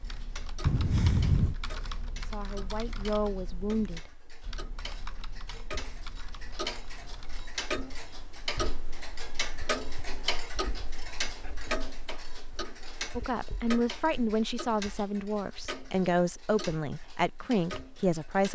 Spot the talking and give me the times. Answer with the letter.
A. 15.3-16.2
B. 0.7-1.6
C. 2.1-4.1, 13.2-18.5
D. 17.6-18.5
C.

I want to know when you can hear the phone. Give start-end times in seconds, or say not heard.
0.7-1.6.